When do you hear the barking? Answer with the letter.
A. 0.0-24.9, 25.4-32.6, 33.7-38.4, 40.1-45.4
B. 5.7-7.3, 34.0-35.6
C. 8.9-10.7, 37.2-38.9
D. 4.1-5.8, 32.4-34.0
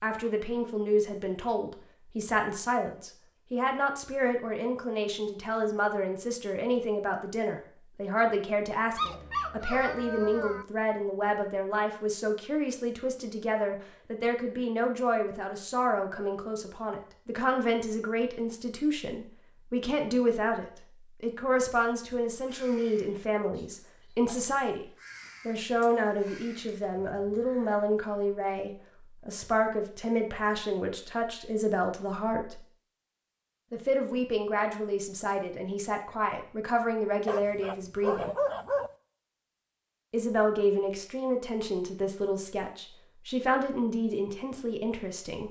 C.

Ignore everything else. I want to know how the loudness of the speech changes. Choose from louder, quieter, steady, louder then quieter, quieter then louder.
steady.